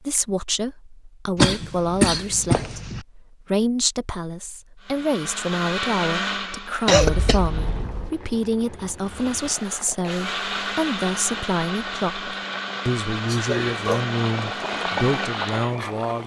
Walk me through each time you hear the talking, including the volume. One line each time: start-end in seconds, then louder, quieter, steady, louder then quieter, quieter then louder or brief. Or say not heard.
0.0-16.2 steady.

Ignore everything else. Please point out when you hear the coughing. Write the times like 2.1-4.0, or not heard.
1.4-3.0, 6.8-8.1, 13.2-14.0.